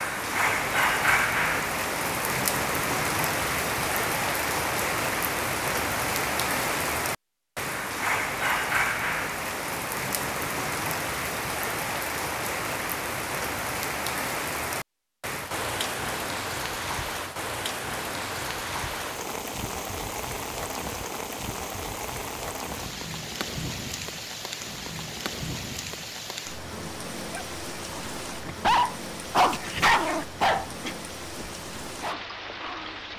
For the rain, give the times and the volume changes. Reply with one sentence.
The rain can be heard from 0.0 to 33.1 s, getting quieter.